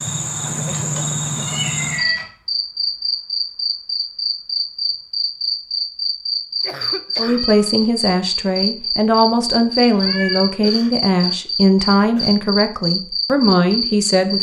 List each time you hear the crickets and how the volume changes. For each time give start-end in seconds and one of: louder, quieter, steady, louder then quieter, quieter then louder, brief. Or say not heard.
0.0-14.3 steady.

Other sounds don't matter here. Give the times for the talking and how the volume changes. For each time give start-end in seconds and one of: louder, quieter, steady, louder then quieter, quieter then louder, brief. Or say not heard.
7.2-14.3 steady.